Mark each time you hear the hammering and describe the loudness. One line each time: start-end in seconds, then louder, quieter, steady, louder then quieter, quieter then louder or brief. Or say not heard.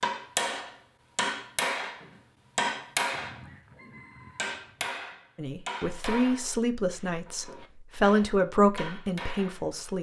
0.0-9.8 quieter.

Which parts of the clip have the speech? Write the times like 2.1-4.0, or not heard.
5.3-9.9.